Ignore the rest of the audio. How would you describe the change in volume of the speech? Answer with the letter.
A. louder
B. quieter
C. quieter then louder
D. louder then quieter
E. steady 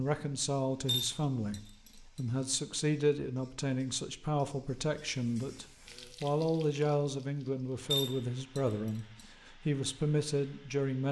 E.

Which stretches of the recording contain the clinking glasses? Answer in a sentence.
You can hear the clinking glasses from 0.8 to 2.2 s and from 7.9 to 9.0 s.